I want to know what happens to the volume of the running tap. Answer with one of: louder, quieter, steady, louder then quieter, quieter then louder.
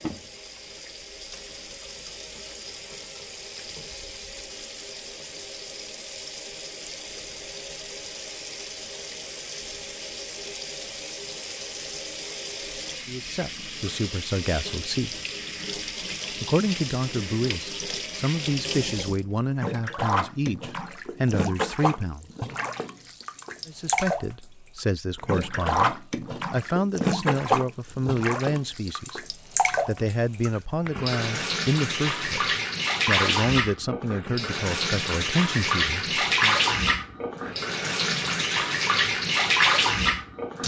louder.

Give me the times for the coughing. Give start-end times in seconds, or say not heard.
not heard.